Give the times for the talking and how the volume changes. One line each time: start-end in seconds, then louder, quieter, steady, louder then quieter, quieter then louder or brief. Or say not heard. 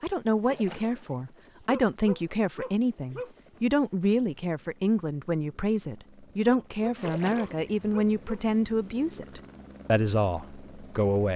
0.0-11.3 steady.